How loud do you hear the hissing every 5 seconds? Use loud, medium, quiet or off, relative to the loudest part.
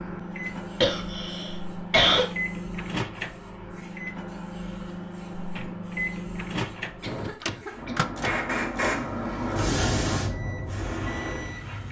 quiet, loud, loud.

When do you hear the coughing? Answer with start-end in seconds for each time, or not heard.
0.8-2.2, 7.0-8.1.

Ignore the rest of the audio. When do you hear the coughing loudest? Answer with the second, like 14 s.
2 s.